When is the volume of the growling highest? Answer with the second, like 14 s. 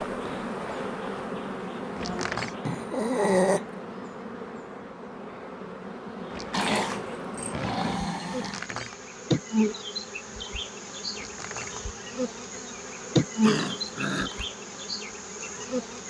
3 s.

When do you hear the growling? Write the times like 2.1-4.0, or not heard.
2.6-3.8, 6.5-8.7, 13.4-14.4.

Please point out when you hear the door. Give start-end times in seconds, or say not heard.
1.9-2.5, 6.3-9.0, 11.2-11.8.